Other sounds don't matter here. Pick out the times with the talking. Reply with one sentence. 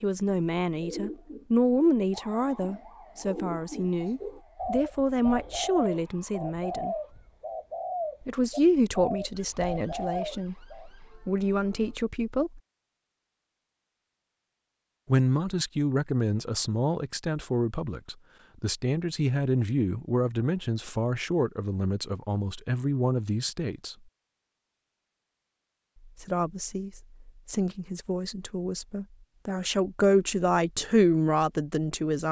The talking can be heard from 0.0 to 7.0 s, from 8.2 to 12.6 s, from 15.1 to 23.9 s and from 26.2 to 32.2 s.